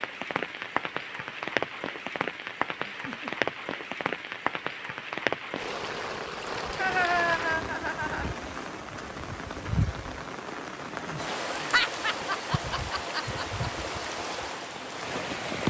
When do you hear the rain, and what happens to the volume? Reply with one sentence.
You can hear the rain from 0.0 to 15.6 s, at a steady volume.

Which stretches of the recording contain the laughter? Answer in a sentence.
The laughter can be heard from 2.9 to 3.4 s, from 6.8 to 8.3 s and from 11.6 to 13.7 s.